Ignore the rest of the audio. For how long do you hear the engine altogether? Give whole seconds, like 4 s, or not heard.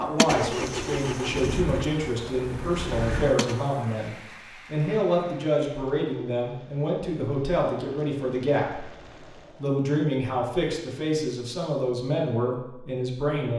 4 s.